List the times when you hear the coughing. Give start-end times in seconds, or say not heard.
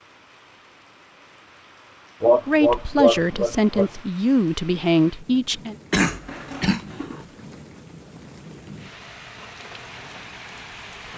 2.2-3.9, 5.9-7.2.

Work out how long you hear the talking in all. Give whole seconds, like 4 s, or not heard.
3 s.